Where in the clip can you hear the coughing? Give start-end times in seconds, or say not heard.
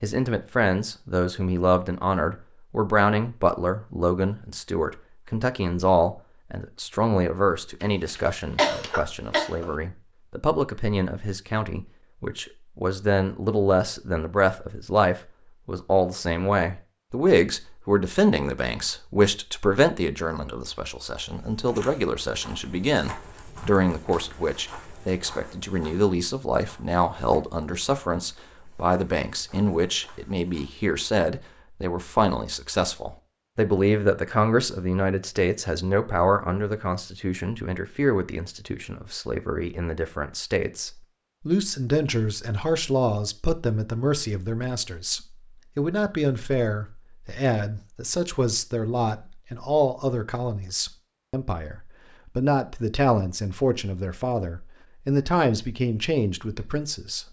7.8-9.7.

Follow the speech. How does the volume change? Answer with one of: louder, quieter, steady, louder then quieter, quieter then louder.
steady.